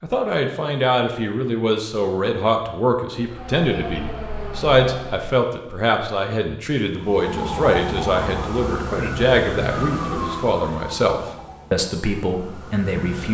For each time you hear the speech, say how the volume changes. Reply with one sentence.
You can hear the speech from 0.0 to 13.2 s, at a steady volume.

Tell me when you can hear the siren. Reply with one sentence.
You can hear the siren from 3.1 to 5.3 s and from 7.0 to 13.2 s.